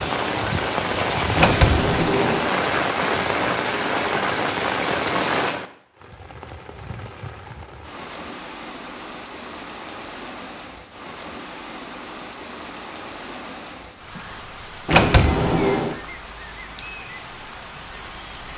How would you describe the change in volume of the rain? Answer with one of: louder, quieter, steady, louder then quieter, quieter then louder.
quieter.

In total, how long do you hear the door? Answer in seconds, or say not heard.
2 s.